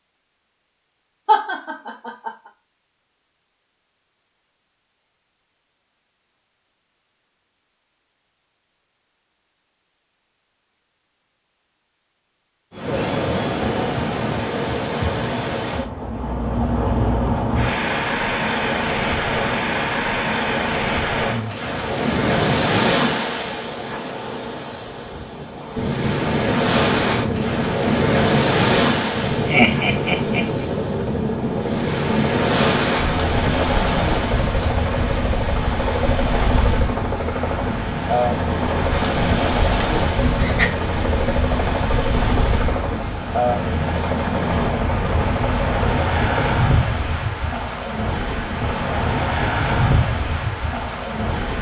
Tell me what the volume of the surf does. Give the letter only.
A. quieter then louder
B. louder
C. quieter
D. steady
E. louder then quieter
D.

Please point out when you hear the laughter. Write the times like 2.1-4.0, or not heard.
1.2-2.3, 29.4-30.6, 39.8-40.7.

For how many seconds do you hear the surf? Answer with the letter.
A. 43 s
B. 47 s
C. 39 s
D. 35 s
C.